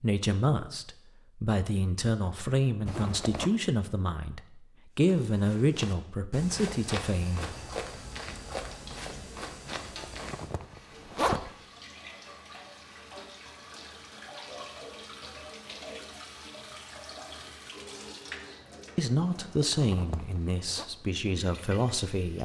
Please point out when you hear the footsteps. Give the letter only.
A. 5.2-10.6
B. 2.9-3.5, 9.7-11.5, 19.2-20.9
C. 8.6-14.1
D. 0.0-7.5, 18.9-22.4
A.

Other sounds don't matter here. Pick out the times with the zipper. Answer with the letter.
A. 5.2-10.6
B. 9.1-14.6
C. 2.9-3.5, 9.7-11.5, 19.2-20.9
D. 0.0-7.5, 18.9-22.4
C.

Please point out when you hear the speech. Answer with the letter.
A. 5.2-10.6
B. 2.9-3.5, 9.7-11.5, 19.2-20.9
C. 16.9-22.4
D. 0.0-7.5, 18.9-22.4
D.